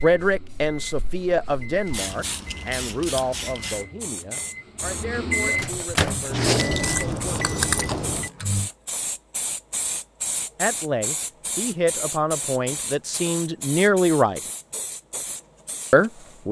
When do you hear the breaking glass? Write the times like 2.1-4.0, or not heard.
not heard.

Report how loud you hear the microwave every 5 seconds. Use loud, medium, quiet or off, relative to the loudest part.
quiet, loud, off, off.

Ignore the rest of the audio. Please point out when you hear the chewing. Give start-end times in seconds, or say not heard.
6.2-8.0.